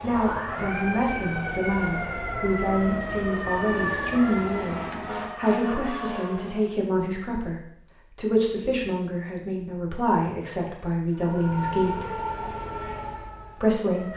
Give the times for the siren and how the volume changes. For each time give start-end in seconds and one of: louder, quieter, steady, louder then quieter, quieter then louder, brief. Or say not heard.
0.0-6.8 steady
11.2-14.1 brief.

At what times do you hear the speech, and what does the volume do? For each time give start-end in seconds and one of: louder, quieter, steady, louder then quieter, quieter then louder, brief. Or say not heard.
0.0-12.1 steady
13.6-14.1 brief.